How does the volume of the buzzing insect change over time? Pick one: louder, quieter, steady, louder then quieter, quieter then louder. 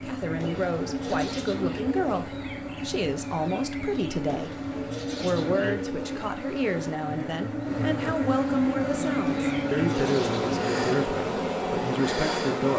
louder.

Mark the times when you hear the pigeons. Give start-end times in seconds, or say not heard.
0.3-2.2, 4.2-6.3, 9.2-10.8.